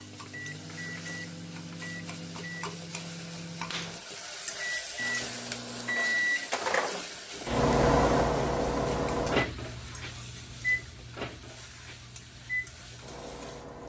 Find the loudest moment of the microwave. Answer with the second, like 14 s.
8 s.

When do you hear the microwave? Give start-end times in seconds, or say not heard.
0.0-13.8.